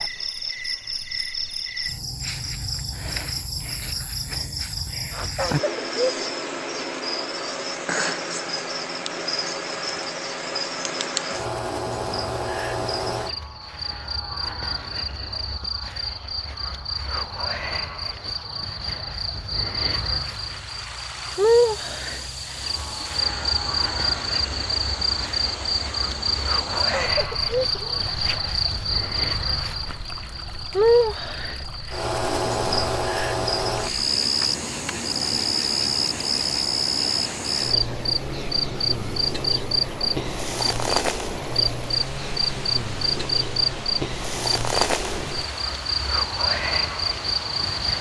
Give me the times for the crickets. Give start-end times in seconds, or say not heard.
0.0-47.9.